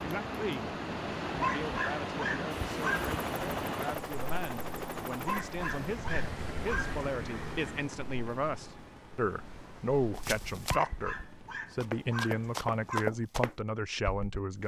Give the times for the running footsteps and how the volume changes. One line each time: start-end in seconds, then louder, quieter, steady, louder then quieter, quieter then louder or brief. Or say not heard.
10.1-14.4 quieter then louder.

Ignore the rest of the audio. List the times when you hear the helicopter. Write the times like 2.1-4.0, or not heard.
2.5-12.9.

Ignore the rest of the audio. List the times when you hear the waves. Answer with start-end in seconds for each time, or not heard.
0.0-10.3.